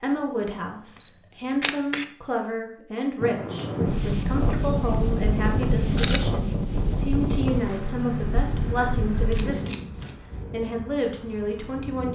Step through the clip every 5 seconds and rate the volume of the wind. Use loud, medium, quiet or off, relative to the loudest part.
loud, loud, quiet.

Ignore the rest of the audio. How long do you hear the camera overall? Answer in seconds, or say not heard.
4 s.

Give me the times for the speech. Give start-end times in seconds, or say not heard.
0.0-12.0.